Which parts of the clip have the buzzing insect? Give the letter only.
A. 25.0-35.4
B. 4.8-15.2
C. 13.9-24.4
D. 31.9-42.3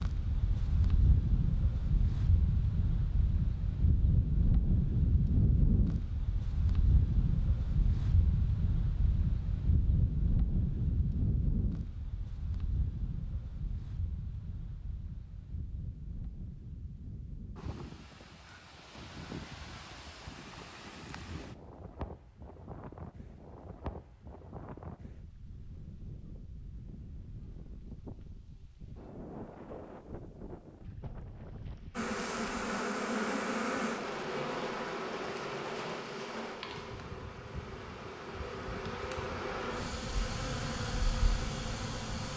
D.